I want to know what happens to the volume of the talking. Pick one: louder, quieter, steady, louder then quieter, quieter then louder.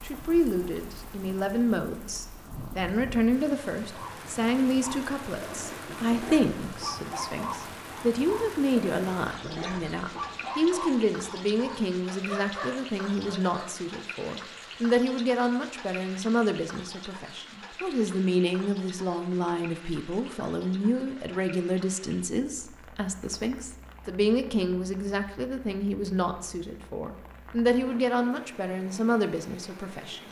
steady.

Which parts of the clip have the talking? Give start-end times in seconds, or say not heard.
0.0-30.2.